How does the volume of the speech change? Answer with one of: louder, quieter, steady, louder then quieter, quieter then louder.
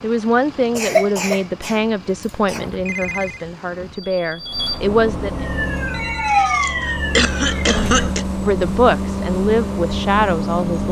steady.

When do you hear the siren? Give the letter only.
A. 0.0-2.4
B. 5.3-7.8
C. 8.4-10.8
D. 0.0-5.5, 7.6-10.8
B.